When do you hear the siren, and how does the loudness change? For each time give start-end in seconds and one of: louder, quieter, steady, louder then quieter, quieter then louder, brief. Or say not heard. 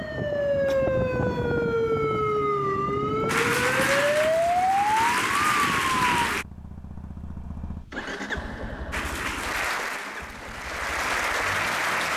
0.0-6.3 steady.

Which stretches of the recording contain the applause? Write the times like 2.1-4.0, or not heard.
3.2-6.5, 8.9-12.1.